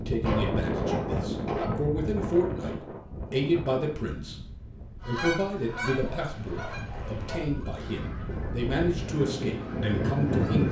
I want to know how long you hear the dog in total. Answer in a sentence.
You can hear the dog for 3 seconds altogether.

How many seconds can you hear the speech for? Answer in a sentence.
The speech can be heard for 10 seconds in total.